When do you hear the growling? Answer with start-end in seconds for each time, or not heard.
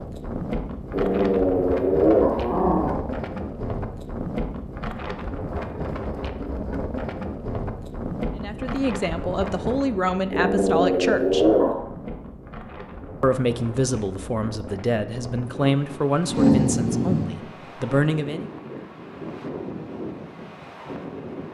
0.9-3.0, 10.3-11.8, 16.2-17.2.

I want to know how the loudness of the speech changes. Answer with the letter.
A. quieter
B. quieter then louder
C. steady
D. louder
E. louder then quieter
C.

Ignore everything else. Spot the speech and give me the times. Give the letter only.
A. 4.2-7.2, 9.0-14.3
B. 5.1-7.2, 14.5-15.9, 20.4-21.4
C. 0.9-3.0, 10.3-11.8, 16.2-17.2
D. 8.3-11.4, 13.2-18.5
D.